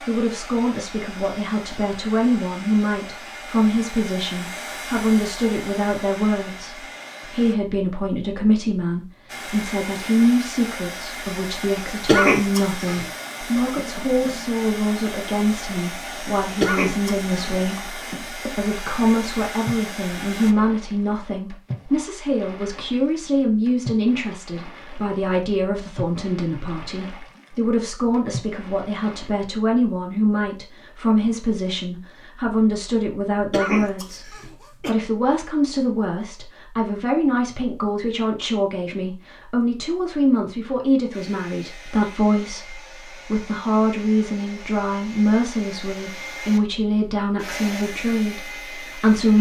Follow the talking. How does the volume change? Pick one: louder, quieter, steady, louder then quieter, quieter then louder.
steady.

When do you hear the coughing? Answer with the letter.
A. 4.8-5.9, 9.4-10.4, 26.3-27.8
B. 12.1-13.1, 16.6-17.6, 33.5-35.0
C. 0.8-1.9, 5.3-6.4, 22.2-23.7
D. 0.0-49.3
B.